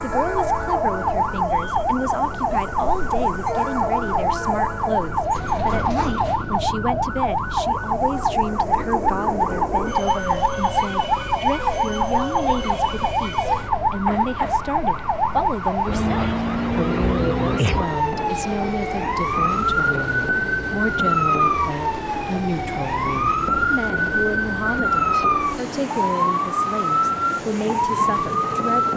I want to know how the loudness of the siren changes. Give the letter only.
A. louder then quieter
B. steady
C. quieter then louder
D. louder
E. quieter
B.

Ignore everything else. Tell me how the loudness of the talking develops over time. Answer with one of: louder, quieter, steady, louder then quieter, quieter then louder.
steady.